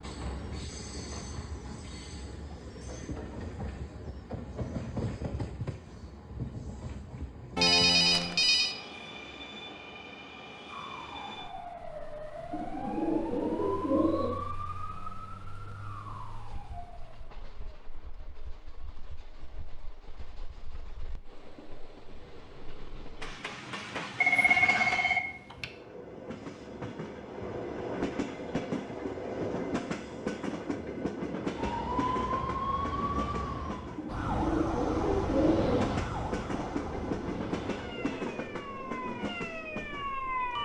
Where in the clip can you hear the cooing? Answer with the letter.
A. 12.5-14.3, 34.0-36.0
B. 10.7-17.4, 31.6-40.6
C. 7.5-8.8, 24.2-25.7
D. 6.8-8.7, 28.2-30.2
A.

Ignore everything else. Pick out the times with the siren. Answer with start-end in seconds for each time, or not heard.
10.7-17.4, 31.6-40.6.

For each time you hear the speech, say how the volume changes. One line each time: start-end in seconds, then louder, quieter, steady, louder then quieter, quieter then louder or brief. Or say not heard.
not heard.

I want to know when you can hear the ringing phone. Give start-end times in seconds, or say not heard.
7.5-8.8, 24.2-25.7.